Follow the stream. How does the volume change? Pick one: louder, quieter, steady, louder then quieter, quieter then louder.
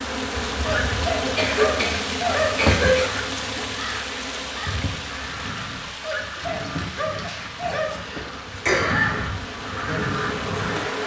quieter.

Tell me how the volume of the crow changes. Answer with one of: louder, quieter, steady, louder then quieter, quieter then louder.
louder.